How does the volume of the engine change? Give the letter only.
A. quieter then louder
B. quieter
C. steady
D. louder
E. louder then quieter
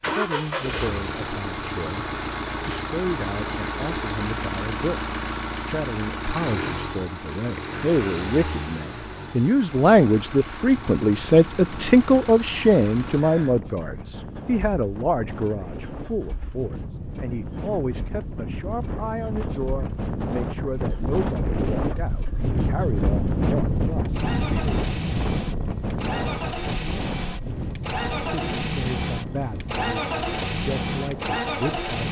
A.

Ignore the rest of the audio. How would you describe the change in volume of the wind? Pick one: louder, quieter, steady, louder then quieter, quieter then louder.
louder then quieter.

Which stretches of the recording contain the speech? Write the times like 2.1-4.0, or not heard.
0.1-24.8, 28.3-32.0.